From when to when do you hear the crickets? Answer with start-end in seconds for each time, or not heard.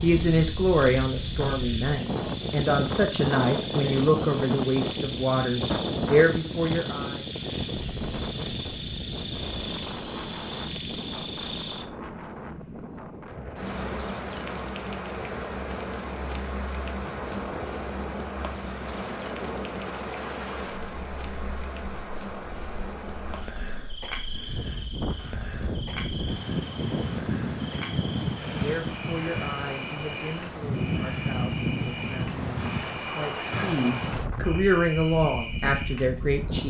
0.0-36.6.